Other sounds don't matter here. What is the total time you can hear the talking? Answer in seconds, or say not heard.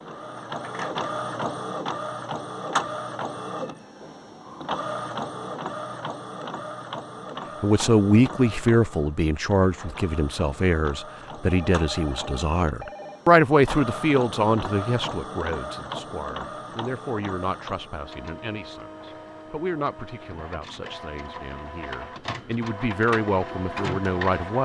17 s.